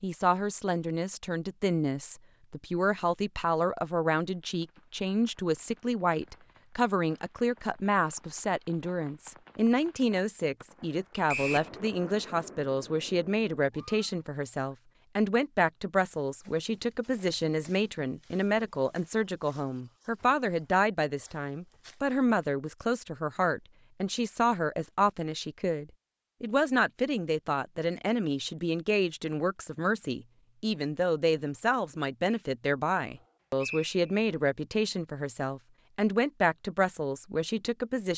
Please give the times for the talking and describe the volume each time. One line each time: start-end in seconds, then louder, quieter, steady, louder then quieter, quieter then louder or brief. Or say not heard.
0.0-38.1 steady.